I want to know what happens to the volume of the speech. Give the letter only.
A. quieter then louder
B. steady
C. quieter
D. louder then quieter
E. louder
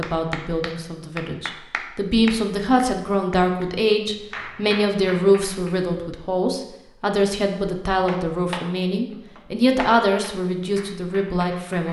B.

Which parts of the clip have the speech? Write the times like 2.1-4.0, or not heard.
0.0-11.8.